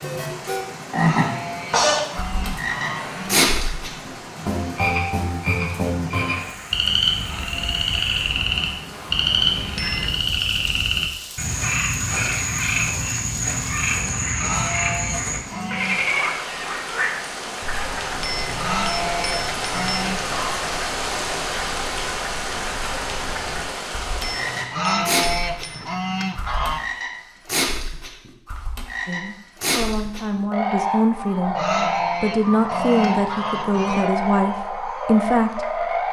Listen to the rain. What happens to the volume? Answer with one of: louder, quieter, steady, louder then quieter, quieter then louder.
louder.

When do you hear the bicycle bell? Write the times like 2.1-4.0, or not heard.
9.8-10.4, 18.2-20.1, 24.2-25.9.